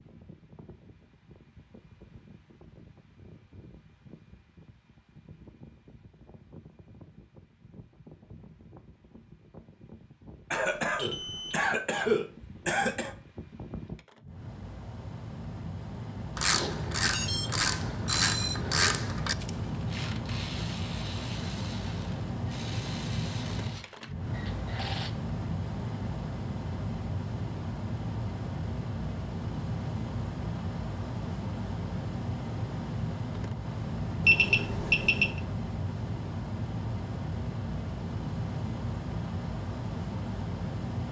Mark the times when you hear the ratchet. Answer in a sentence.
You can hear the ratchet from 16.4 to 25.1 s.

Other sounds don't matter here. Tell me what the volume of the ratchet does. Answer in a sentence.
The loudness of the ratchet goes down.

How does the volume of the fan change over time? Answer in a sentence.
The loudness of the fan goes up.